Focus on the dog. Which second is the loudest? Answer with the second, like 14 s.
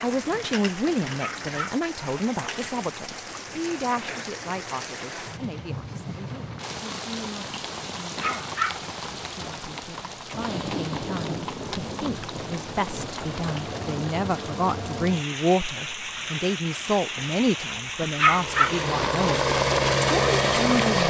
18 s.